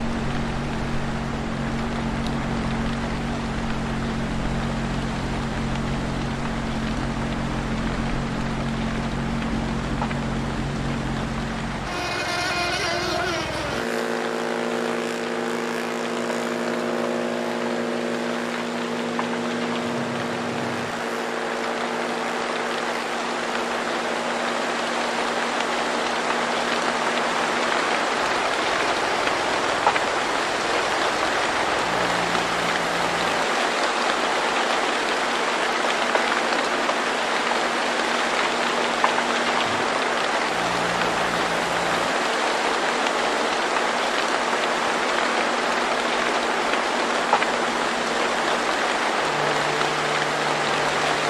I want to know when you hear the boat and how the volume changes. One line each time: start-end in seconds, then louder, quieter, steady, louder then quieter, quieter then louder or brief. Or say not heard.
0.0-51.2 quieter.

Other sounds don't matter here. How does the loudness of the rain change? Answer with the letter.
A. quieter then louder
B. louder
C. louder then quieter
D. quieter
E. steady
B.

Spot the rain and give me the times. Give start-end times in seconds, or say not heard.
0.0-51.2.